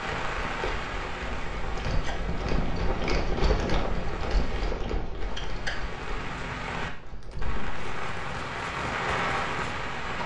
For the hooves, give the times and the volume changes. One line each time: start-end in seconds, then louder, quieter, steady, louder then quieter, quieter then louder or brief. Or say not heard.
0.0-10.2 louder then quieter.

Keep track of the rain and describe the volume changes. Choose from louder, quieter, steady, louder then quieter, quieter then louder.
quieter then louder.